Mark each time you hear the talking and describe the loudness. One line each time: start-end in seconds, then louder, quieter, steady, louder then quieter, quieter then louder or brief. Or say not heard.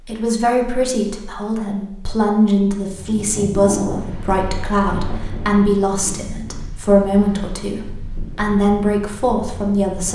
0.1-10.1 steady.